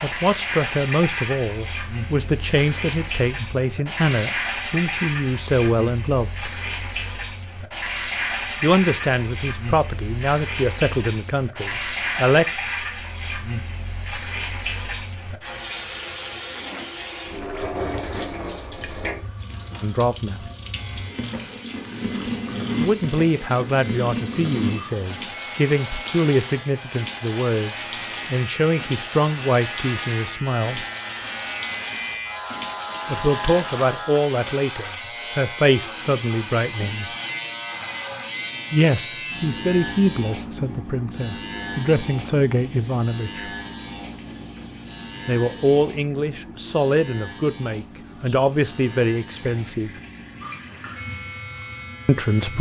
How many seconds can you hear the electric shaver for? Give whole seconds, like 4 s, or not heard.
32 s.